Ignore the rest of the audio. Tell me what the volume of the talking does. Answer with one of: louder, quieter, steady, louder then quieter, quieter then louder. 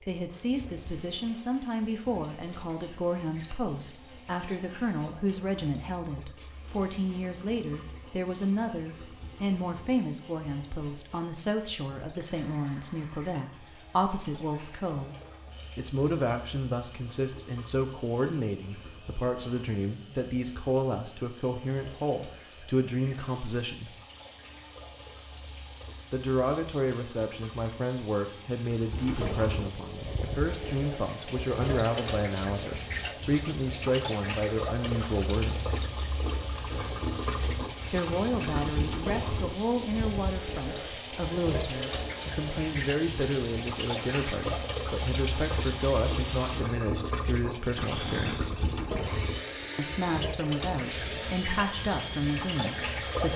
steady.